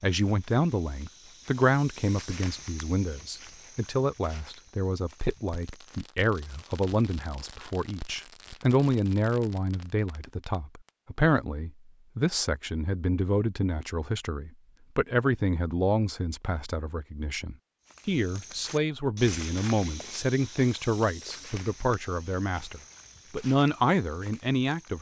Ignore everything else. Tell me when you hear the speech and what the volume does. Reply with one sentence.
The speech can be heard from 0.0 to 24.9 s, at a steady volume.